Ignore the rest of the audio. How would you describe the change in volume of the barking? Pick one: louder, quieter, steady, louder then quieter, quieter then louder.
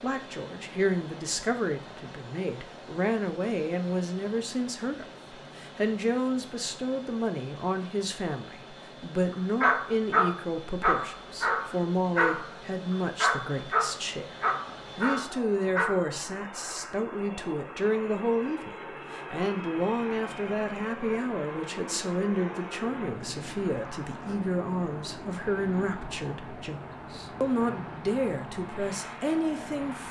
quieter.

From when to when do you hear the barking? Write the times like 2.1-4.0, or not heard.
9.3-16.1.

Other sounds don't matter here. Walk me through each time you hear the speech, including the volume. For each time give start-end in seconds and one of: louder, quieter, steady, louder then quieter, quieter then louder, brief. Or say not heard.
0.0-30.0 steady.